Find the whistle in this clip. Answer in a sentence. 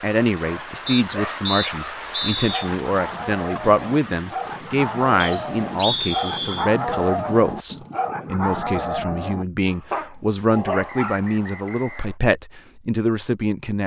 The whistle can be heard from 0.8 to 2.7 s, from 5.2 to 6.7 s and from 10.7 to 12.2 s.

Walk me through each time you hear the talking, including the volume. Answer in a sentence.
You can hear the talking from 0.0 to 13.8 s, at a steady volume.